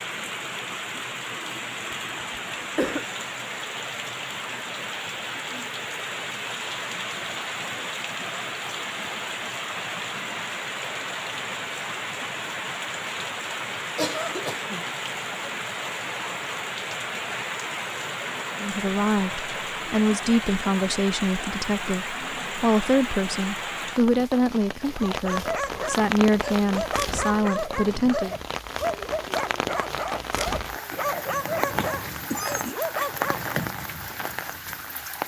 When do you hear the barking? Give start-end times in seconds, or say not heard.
24.9-33.5.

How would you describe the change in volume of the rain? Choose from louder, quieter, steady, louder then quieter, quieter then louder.
steady.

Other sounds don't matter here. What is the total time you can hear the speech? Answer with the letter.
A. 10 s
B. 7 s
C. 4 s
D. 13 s
A.